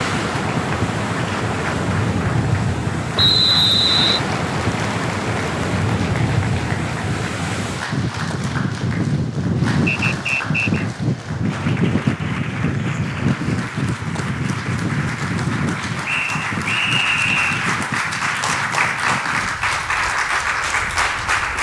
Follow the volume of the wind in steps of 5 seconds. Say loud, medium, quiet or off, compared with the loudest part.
loud, loud, loud, medium, quiet.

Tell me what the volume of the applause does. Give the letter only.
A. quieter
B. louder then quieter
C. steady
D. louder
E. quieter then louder
D.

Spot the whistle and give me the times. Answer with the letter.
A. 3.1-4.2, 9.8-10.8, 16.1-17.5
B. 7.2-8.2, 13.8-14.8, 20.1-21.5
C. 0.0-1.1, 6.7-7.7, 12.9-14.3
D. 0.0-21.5
A.